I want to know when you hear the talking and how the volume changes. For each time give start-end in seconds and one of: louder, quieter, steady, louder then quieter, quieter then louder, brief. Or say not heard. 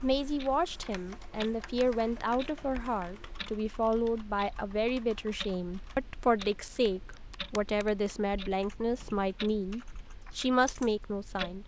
0.0-11.6 steady.